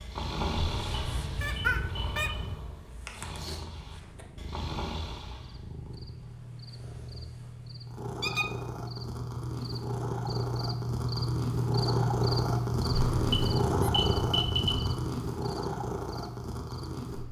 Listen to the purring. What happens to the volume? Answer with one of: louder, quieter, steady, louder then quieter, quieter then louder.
louder.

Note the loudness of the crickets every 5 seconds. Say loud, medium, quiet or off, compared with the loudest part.
off, medium, loud, medium.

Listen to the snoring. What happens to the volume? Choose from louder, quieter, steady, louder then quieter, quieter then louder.
quieter then louder.